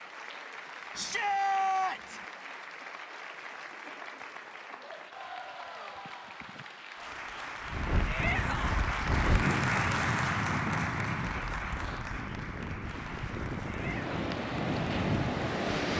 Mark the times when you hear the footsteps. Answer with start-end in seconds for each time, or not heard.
not heard.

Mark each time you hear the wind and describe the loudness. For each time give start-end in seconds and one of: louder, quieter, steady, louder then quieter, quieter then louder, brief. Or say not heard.
7.7-15.9 quieter then louder.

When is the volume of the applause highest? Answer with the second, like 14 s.
10 s.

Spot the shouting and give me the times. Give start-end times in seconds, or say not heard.
0.9-2.2, 8.1-8.8, 13.7-14.1.